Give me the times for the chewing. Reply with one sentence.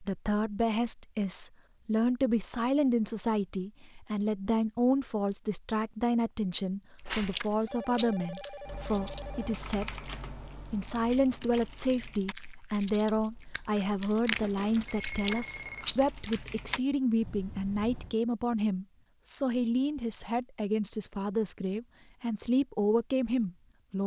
The chewing can be heard from 7.0 to 16.5 s.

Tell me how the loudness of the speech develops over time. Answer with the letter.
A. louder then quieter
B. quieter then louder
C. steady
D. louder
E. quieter
C.